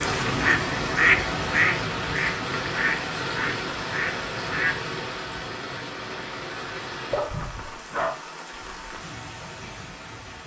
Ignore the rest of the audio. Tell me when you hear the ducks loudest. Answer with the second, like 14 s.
1 s.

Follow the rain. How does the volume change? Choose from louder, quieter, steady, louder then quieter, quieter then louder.
quieter.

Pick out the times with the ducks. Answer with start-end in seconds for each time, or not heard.
0.0-4.9.